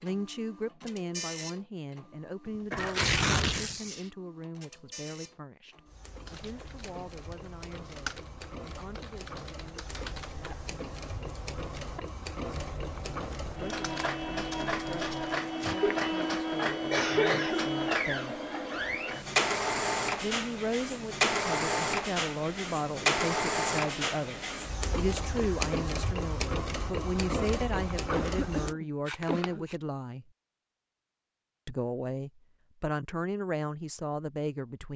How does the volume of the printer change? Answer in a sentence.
The volume of the printer goes up.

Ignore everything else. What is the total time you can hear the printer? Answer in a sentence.
You can hear the printer for 29 seconds altogether.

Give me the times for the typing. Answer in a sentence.
The typing can be heard from 6.2 to 15.4 s.